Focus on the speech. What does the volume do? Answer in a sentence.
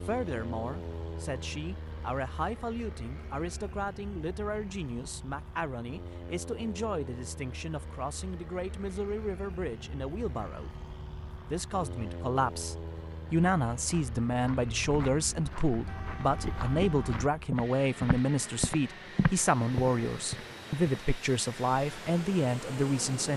The loudness of the speech goes up.